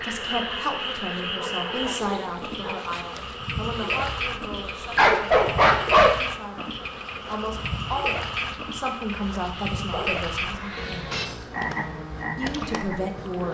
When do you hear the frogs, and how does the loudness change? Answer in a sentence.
You can hear the frogs from 0.0 to 13.4 s, at a steady volume.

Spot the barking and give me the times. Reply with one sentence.
The barking can be heard from 1.4 to 3.0 s, from 5.0 to 6.2 s and from 9.9 to 11.0 s.